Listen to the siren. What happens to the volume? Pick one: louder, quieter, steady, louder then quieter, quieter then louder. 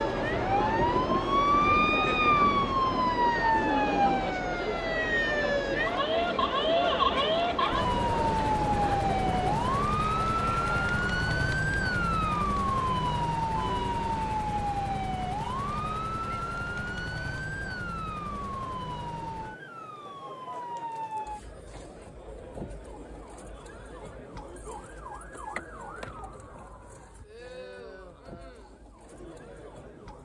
quieter.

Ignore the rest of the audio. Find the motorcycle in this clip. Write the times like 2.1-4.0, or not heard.
0.0-4.3.